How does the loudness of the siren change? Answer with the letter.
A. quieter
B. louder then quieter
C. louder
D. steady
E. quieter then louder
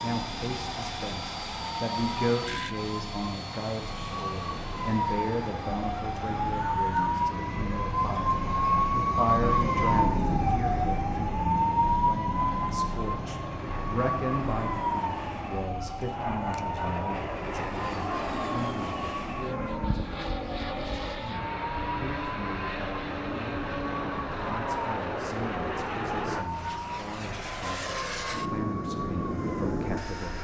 B.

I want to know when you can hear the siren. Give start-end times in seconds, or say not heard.
0.0-30.4.